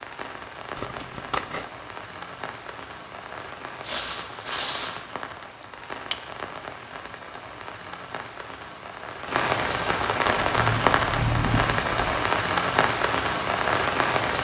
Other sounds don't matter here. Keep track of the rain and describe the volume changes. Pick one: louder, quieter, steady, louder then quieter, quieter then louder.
louder.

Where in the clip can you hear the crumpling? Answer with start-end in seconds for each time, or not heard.
3.8-5.0.